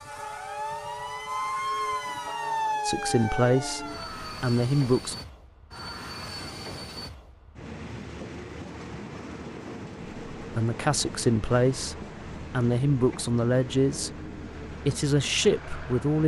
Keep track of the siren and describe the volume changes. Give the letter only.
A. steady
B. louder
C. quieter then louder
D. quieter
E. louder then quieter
E.